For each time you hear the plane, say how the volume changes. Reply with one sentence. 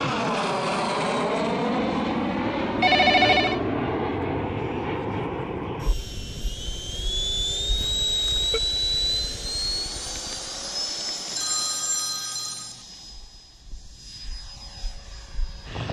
You can hear the plane from 0.0 to 15.8 s, getting quieter.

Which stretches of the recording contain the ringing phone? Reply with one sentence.
You can hear the ringing phone from 2.8 to 3.6 s, from 7.8 to 8.6 s and from 11.3 to 12.8 s.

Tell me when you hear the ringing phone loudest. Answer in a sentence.
The volume of the ringing phone peaks at 3 seconds.